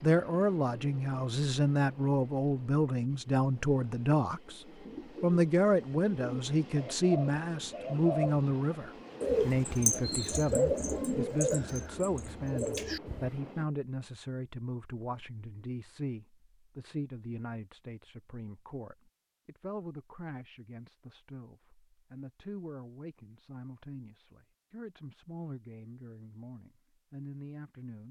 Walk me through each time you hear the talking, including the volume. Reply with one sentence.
You can hear the talking from 0.0 to 28.0 s, getting quieter.